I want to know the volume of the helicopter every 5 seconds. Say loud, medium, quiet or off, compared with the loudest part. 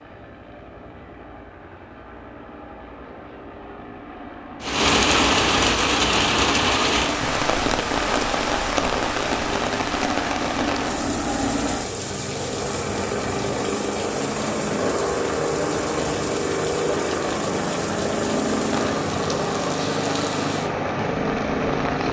quiet, medium, loud, loud, loud.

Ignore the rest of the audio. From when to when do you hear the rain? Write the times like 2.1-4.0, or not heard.
4.6-22.0.